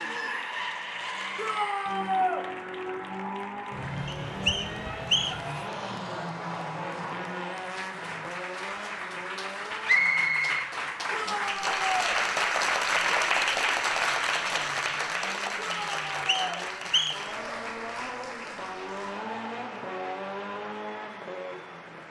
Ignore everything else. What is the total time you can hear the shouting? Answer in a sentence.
The shouting can be heard for 3 seconds in total.